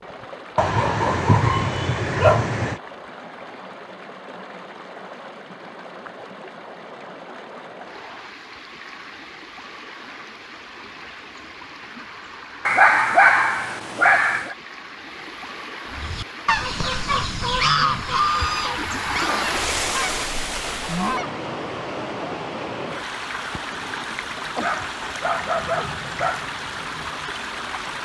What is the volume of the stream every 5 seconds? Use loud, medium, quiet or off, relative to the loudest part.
medium, medium, medium, loud, loud, loud.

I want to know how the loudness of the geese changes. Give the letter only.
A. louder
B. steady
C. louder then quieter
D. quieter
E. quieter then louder
D.